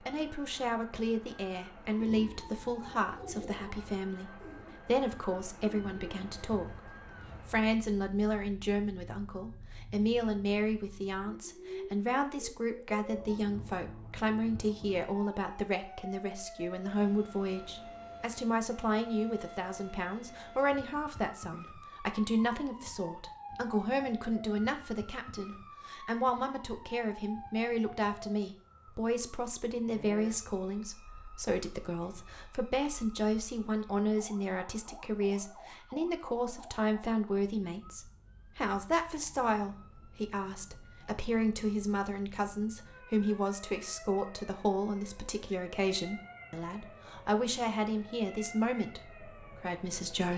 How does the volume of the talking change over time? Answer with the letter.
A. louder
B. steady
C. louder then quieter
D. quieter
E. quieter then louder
B.